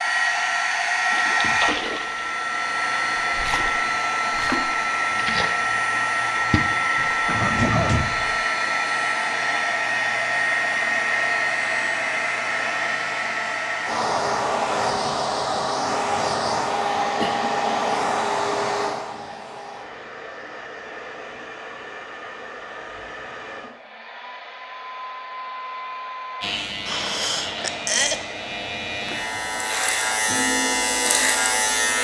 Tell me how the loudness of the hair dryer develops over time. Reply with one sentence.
The volume of the hair dryer goes down.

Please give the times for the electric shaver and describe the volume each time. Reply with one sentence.
You can hear the electric shaver from 26.4 to 31.9 s, getting louder.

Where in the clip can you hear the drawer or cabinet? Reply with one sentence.
You can hear the drawer or cabinet from 7.0 to 8.3 s.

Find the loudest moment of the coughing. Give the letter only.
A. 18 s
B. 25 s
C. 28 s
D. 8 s
C.